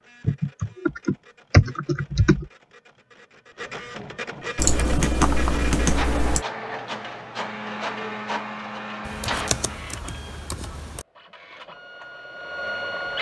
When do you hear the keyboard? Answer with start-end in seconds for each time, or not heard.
0.2-2.5, 4.5-6.5, 9.1-11.1.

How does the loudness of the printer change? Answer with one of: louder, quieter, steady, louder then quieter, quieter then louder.
louder then quieter.